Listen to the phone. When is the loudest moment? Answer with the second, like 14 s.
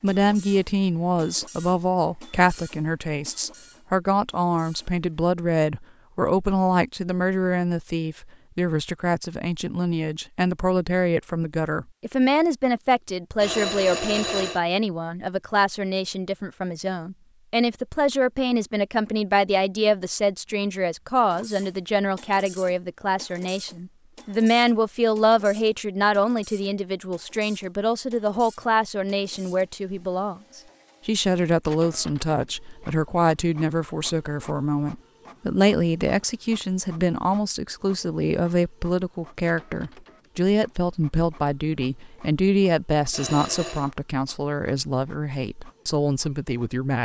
14 s.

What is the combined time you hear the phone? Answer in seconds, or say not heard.
2 s.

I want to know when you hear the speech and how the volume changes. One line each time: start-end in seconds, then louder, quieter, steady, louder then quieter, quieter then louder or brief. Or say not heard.
0.0-47.0 steady.